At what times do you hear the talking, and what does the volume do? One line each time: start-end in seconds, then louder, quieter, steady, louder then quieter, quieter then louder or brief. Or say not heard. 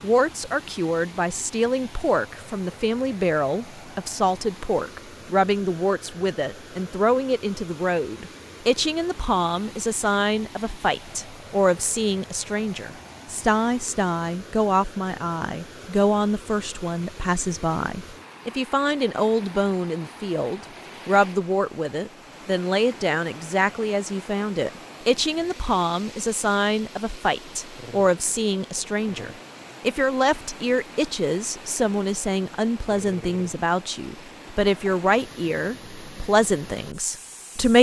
0.0-37.7 steady.